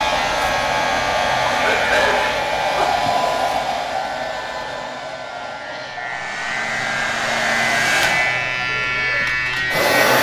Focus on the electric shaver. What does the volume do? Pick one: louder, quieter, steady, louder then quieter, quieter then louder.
quieter then louder.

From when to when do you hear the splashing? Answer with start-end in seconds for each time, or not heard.
not heard.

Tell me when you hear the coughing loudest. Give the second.
2 s.